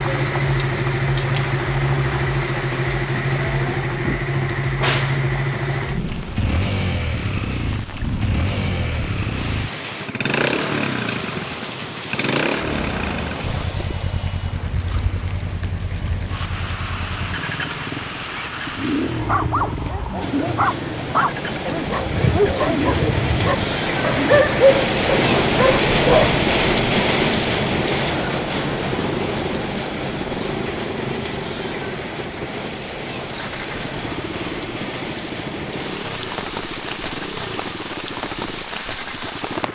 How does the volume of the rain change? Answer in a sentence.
The loudness of the rain goes up, then down.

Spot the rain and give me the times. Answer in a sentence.
You can hear the rain from 0.0 to 39.7 s.